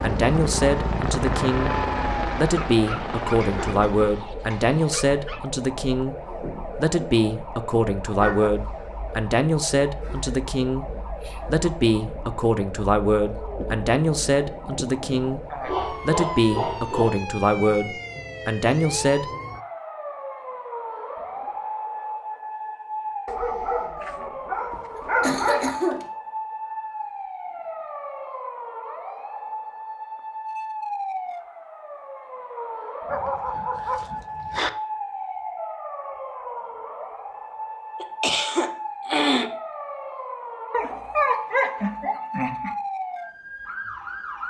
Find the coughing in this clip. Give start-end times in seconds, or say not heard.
3.4-4.8, 24.7-26.1, 38.0-39.5.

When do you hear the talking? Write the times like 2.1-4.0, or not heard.
0.0-1.8, 2.4-6.2, 6.8-10.8, 11.4-15.4, 16.1-19.2.